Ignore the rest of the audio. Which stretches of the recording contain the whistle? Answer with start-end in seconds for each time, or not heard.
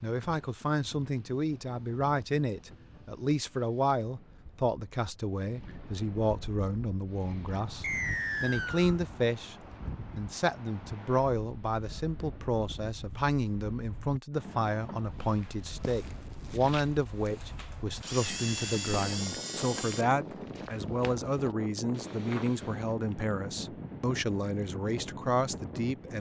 7.8-8.9.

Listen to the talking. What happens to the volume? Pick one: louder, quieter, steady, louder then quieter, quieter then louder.
steady.